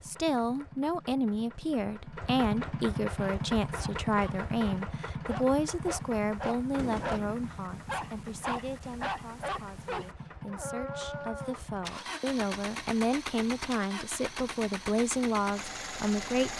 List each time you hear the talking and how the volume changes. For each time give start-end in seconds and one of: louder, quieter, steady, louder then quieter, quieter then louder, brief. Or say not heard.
0.0-16.5 quieter then louder.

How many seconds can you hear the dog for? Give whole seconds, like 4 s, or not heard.
9 s.